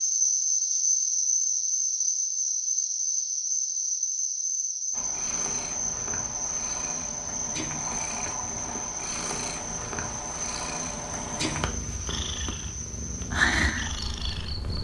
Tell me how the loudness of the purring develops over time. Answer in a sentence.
The volume of the purring goes up.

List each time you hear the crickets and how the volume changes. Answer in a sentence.
You can hear the crickets from 0.0 to 14.7 s, getting quieter.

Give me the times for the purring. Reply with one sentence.
The purring can be heard from 4.9 to 14.7 s.